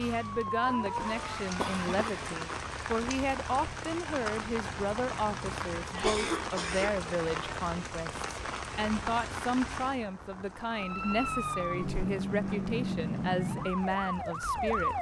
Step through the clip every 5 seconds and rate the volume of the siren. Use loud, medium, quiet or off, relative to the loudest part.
loud, off, loud.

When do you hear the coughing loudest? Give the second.
6 s.